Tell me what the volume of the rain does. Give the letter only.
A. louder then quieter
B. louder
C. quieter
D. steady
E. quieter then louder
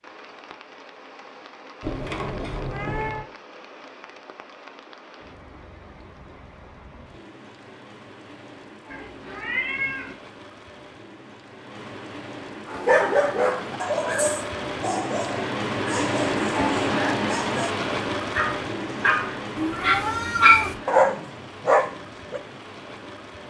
A.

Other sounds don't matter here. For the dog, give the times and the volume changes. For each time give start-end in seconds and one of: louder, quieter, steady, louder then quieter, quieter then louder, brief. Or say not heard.
12.7-22.4 quieter then louder.